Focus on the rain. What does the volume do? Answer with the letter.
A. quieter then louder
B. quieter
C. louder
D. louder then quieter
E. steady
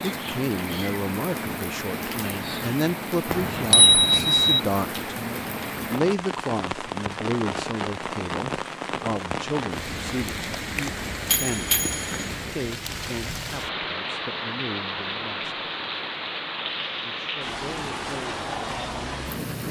E.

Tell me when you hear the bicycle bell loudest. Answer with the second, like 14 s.
4 s.